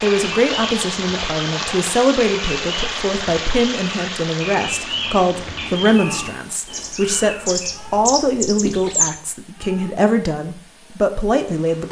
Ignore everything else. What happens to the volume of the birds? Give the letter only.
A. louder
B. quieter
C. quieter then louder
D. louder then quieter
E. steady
A.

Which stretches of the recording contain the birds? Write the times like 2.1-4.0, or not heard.
0.0-9.1.